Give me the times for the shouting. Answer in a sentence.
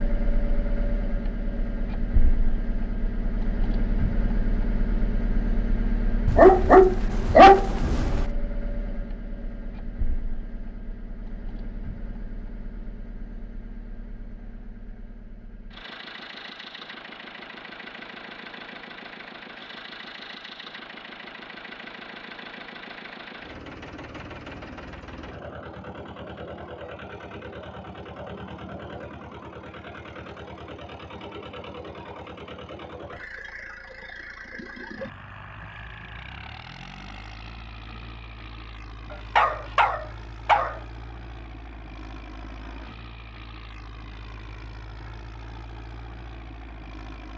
The shouting can't be heard in this clip.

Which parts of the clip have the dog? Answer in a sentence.
You can hear the dog from 6.2 to 8.2 s and from 39.1 to 40.8 s.